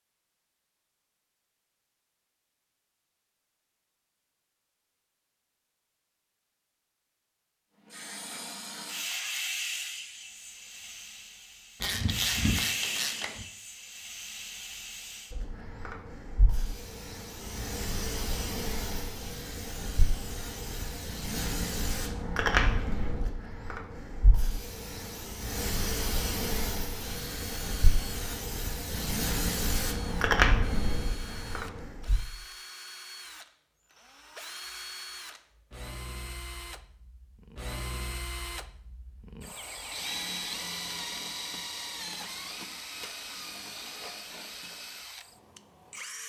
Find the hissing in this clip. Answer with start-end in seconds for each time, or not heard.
7.9-32.3.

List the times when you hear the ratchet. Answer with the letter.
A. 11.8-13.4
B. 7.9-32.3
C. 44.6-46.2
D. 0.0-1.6
A.